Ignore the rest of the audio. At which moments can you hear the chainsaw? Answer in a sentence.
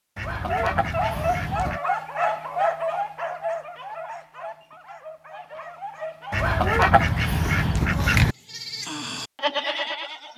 You can't hear the chainsaw here.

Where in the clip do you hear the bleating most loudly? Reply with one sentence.
The loudest moment of the bleating is at 10 seconds.